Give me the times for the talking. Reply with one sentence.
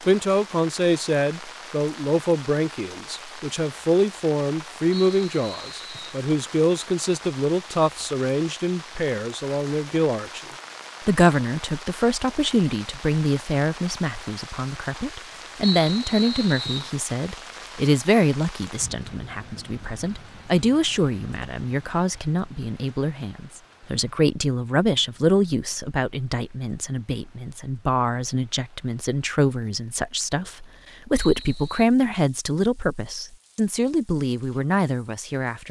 You can hear the talking from 0.0 to 10.4 s and from 11.1 to 35.6 s.